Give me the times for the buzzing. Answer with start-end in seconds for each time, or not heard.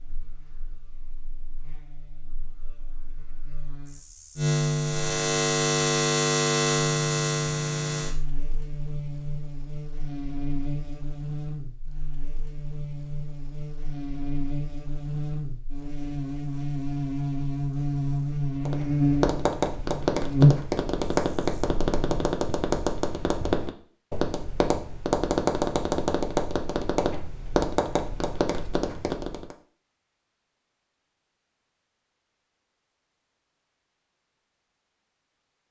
0.0-22.3.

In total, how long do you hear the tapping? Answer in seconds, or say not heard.
11 s.